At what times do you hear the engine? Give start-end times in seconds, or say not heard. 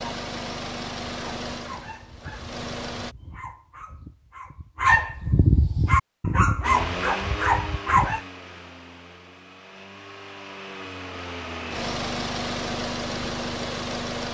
0.0-3.1, 6.6-14.2.